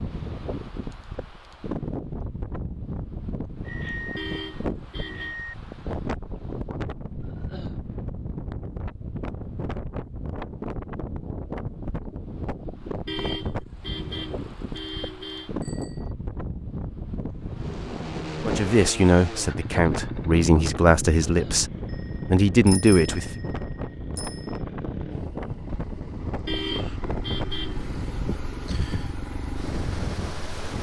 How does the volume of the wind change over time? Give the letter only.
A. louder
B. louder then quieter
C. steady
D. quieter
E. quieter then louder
C.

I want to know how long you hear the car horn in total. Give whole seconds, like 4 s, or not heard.
5 s.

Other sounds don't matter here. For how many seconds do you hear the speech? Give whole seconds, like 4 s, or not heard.
5 s.